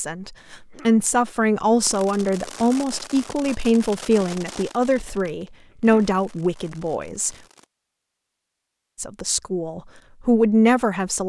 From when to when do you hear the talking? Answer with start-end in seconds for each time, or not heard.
0.0-7.3, 8.9-11.2.